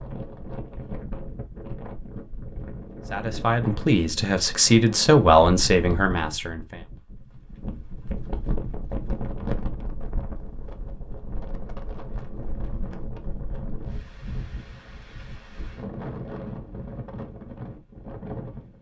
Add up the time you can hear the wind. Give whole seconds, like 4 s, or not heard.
19 s.